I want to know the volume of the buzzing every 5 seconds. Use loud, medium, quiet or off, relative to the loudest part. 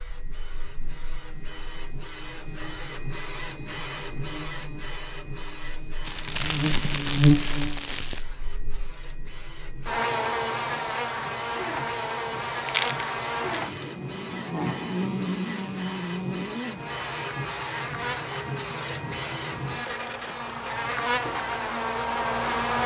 quiet, loud, loud, medium, loud.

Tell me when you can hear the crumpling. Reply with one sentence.
You can hear the crumpling from 6.0 to 8.2 s and from 12.7 to 13.8 s.